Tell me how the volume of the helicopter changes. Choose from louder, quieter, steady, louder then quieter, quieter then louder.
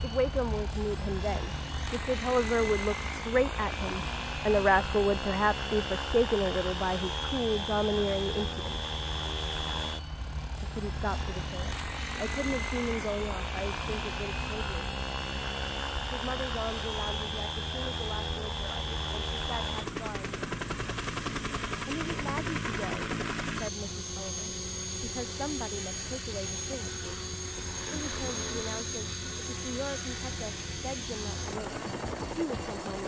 steady.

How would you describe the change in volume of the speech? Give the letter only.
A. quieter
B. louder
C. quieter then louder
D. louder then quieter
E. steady
A.